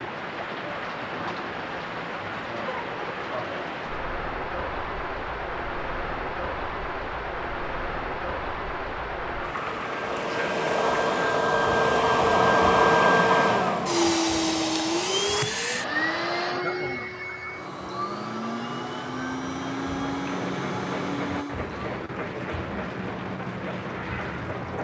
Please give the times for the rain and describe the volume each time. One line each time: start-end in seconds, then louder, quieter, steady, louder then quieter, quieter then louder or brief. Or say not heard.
0.0-24.7 quieter then louder.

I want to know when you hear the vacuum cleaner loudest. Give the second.
13 s.